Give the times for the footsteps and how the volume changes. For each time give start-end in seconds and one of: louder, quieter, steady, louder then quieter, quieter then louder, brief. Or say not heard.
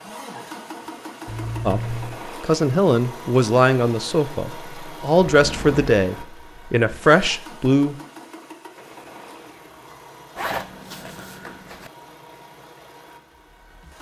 not heard.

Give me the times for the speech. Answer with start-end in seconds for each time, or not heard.
1.6-8.0.